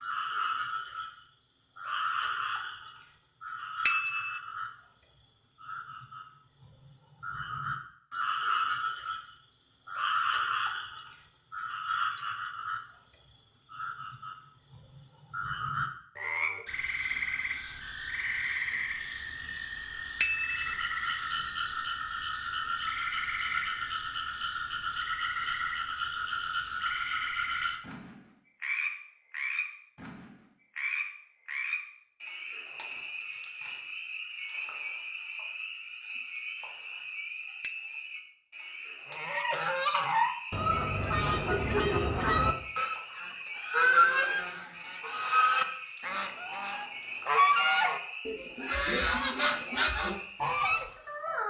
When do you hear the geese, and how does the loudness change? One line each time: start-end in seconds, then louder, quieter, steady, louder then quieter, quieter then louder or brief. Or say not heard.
39.1-50.9 steady.